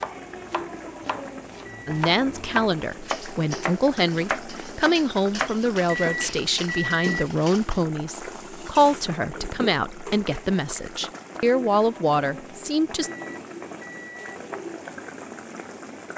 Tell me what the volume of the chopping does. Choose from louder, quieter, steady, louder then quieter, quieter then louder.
louder.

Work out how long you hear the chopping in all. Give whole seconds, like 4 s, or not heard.
6 s.